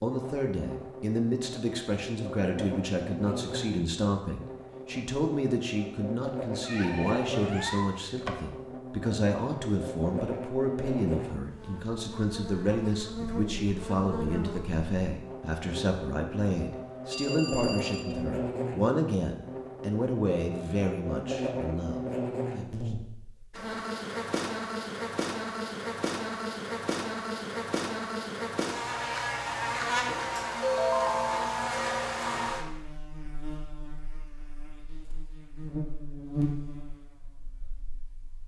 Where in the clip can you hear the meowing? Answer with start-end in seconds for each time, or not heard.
6.6-8.0.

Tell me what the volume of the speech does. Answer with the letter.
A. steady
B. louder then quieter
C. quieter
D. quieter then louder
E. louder
A.